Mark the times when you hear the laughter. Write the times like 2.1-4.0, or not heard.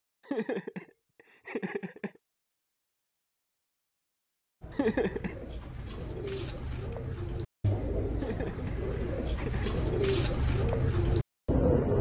0.2-2.2, 4.7-5.4, 8.2-9.8.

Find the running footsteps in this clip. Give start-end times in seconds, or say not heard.
not heard.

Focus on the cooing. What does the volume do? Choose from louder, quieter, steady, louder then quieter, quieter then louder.
louder.